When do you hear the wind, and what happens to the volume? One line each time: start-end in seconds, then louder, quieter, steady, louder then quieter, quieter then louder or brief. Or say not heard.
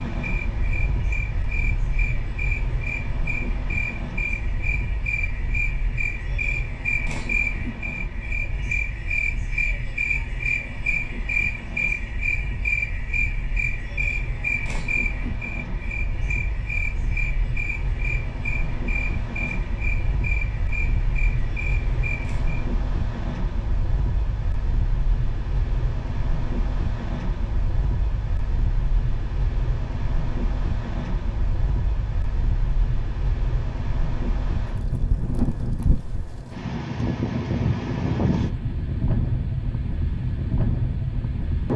0.0-41.7 louder.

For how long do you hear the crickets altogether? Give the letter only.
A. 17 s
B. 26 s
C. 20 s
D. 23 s
D.